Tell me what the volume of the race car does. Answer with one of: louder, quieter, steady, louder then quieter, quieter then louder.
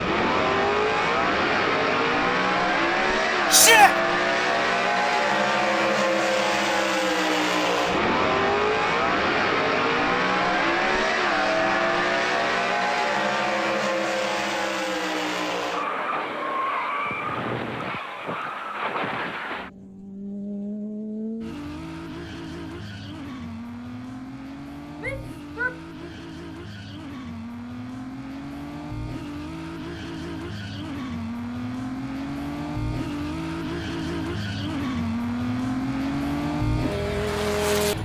quieter then louder.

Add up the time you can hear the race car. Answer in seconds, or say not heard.
38 s.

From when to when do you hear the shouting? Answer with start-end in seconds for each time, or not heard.
3.5-4.0, 24.9-26.1.